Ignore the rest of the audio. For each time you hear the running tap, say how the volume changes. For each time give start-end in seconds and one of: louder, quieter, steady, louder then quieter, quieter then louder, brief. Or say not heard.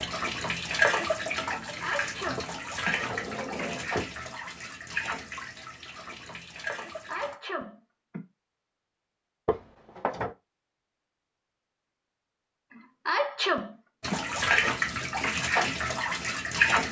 0.0-7.3 quieter
14.0-16.8 brief.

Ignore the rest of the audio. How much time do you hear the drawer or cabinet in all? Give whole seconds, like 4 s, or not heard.
3 s.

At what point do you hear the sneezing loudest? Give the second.
13 s.